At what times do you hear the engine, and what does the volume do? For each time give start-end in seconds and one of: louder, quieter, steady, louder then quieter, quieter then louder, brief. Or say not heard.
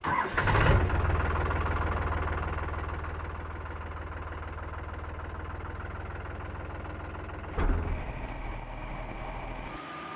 0.0-10.1 quieter.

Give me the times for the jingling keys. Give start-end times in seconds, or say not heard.
7.5-8.6.